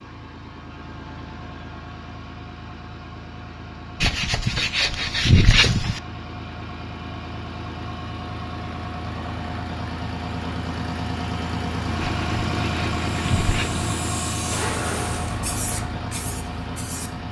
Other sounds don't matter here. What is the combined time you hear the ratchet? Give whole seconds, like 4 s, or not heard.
not heard.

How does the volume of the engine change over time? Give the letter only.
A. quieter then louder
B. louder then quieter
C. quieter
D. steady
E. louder
E.